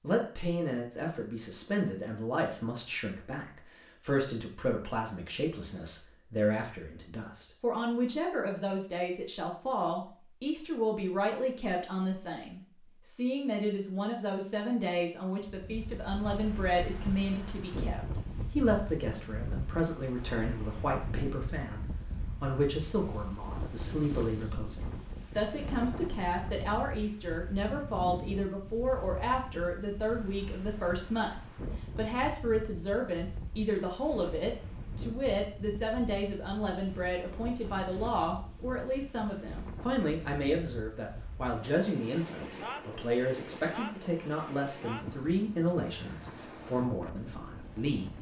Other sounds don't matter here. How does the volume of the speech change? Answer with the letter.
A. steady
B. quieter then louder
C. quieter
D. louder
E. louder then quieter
A.